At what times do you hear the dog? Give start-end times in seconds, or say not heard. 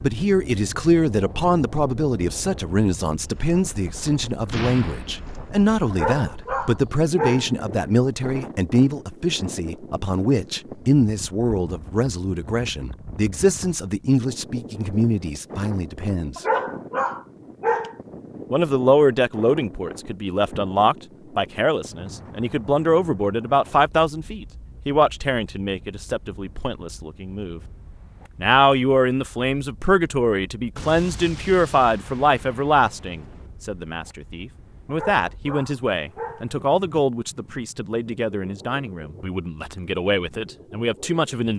5.9-7.5, 16.4-17.9, 34.9-36.5.